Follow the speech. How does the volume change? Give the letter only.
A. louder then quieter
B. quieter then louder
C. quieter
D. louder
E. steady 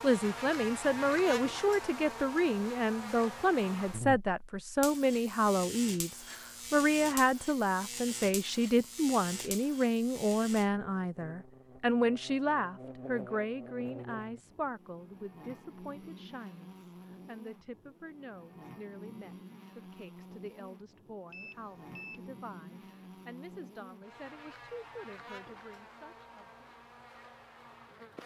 C.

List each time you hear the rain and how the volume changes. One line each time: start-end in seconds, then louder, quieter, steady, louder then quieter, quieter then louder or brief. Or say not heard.
not heard.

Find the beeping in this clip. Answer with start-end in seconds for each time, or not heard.
21.3-22.2.